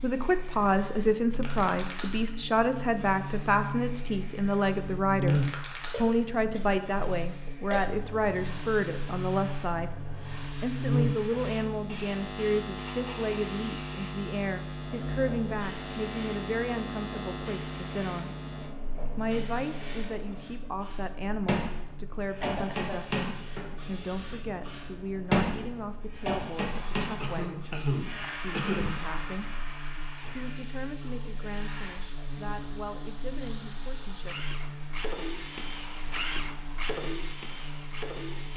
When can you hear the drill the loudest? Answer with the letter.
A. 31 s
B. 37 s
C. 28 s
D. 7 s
B.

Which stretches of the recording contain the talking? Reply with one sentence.
You can hear the talking from 0.0 to 9.9 s, from 10.6 to 18.4 s, from 19.1 to 29.5 s and from 30.4 to 34.5 s.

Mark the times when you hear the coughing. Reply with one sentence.
You can hear the coughing from 5.8 to 7.9 s, from 22.4 to 23.0 s and from 27.2 to 29.0 s.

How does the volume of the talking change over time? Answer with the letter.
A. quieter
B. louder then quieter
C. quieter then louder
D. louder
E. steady
A.